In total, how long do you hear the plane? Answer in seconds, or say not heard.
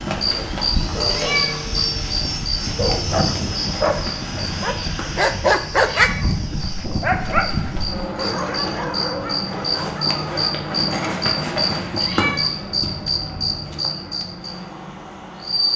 16 s.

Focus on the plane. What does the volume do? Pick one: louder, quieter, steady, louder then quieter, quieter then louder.
quieter.